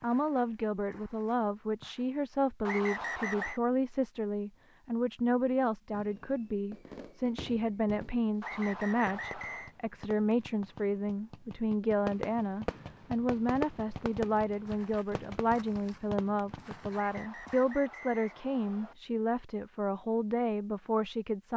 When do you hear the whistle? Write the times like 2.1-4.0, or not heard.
2.6-3.6, 8.4-9.8, 16.9-18.9.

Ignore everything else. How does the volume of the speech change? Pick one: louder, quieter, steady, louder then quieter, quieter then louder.
steady.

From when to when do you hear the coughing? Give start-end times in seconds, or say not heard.
not heard.